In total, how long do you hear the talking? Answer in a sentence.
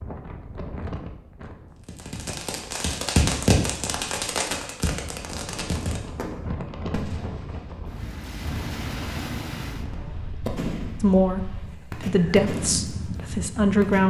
The talking can be heard for 3 seconds in total.